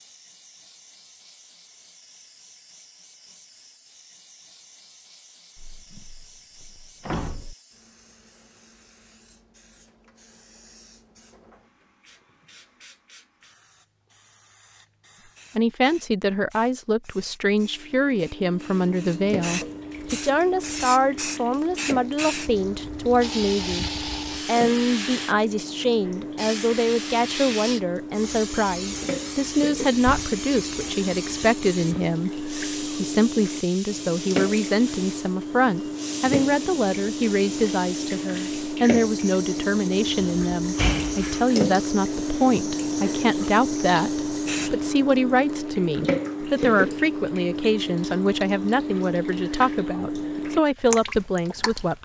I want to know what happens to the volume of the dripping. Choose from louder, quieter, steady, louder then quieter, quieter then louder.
louder.